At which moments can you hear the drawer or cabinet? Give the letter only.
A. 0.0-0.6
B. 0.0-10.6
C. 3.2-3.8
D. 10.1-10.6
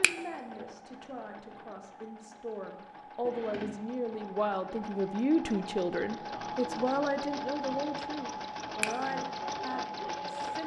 C.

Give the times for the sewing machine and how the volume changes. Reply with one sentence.
You can hear the sewing machine from 0.0 to 10.6 s, getting louder.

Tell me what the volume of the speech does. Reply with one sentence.
The loudness of the speech goes up, then down.